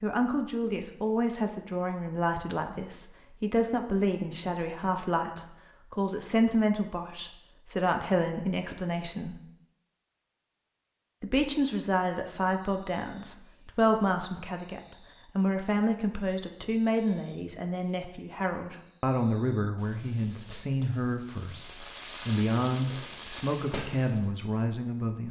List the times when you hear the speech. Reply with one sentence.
The speech can be heard from 0.0 to 9.3 s and from 11.2 to 25.2 s.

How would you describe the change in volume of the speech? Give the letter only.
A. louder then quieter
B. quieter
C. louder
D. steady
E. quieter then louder
D.